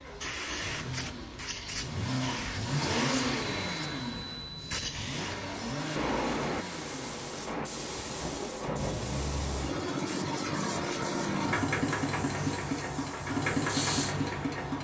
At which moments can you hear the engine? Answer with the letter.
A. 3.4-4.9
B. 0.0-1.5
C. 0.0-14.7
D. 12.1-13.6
C.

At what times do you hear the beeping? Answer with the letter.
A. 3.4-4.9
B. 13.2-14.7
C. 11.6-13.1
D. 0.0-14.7
A.